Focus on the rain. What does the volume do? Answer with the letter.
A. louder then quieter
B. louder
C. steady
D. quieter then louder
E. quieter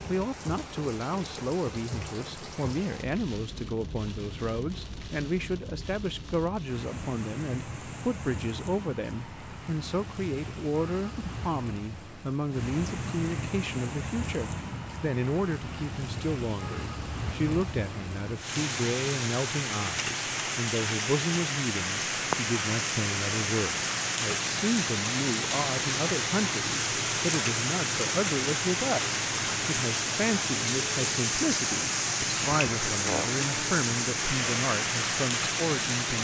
B.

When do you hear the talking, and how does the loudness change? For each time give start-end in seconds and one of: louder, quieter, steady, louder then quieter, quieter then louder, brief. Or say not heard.
0.1-36.2 steady.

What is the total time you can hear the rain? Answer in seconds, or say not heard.
36 s.